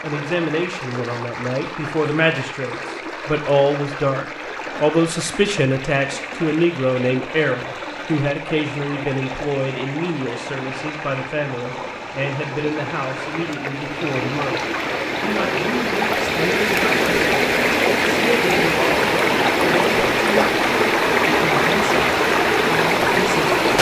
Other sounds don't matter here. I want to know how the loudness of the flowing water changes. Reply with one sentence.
The loudness of the flowing water goes up.